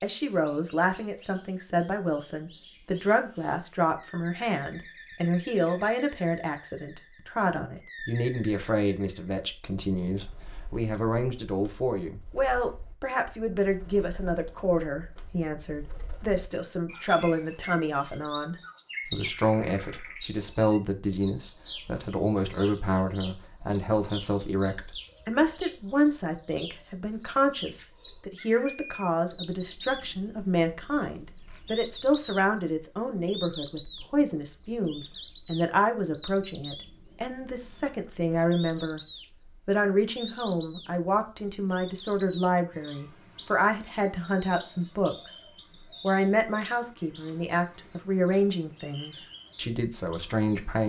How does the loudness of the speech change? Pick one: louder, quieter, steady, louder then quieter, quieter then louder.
steady.